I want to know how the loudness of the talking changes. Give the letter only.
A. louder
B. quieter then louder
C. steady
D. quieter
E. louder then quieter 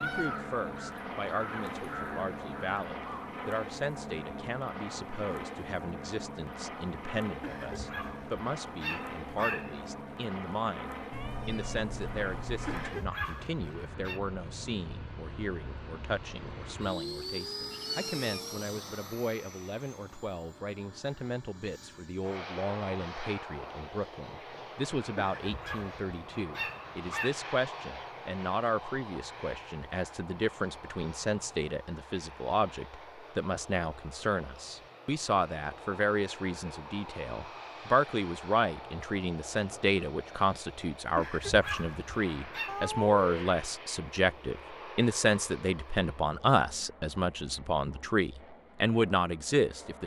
A.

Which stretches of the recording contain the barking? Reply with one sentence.
The barking can be heard from 7.4 to 9.8 s, from 12.7 to 14.2 s, from 25.1 to 27.4 s and from 41.1 to 42.8 s.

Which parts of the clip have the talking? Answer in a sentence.
The talking can be heard from 0.0 to 50.0 s.